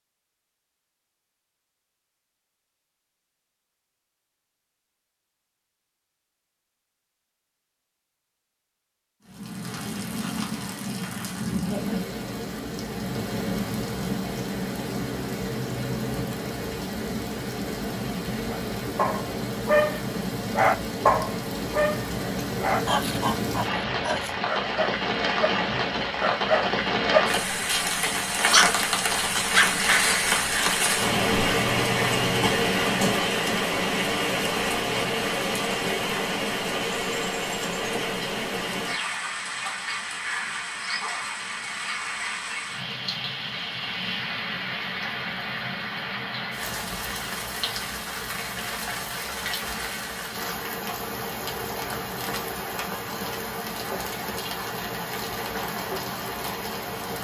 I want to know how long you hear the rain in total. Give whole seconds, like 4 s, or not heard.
48 s.